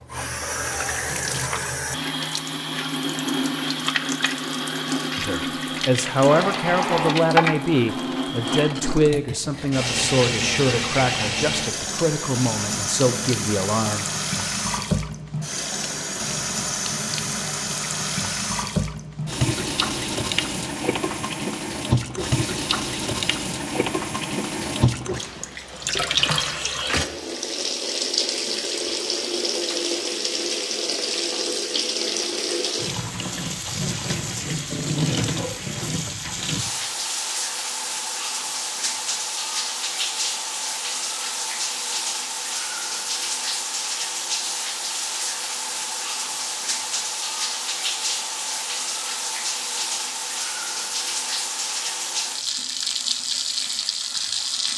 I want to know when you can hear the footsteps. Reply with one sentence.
You can't hear the footsteps here.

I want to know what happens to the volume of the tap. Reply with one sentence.
The loudness of the tap stays about the same.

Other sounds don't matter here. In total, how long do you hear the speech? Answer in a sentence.
The speech can be heard for 9 seconds in total.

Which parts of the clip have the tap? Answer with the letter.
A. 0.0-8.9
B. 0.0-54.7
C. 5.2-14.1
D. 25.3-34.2
B.